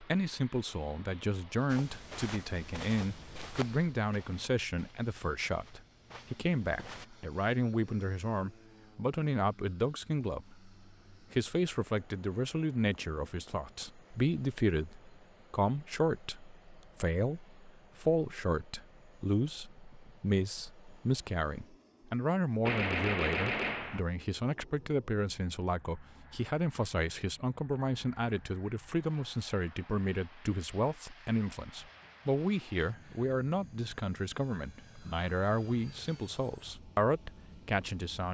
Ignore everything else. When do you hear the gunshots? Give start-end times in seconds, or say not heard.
22.6-24.0.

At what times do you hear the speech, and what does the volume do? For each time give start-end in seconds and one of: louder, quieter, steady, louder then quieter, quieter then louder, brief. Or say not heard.
0.0-10.7 steady
11.3-38.2 steady.